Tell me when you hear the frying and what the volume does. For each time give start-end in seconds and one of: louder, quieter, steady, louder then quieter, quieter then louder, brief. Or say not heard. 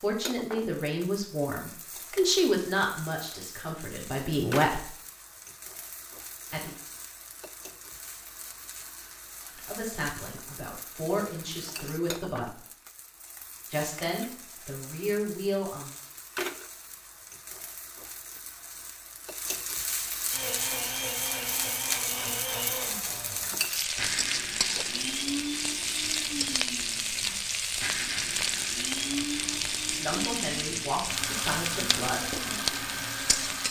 0.0-33.6 louder.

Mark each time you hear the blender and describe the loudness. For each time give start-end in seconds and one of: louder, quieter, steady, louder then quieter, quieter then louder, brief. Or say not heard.
20.3-33.6 steady.